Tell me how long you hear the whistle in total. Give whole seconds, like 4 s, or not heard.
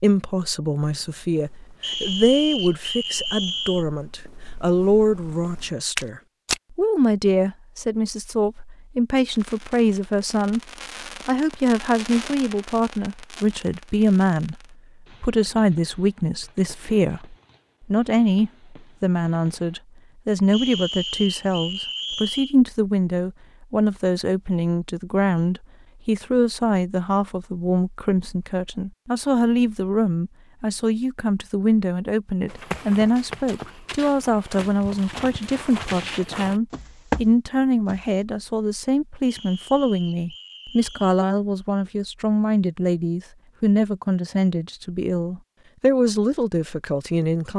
6 s.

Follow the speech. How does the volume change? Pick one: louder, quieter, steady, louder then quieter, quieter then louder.
steady.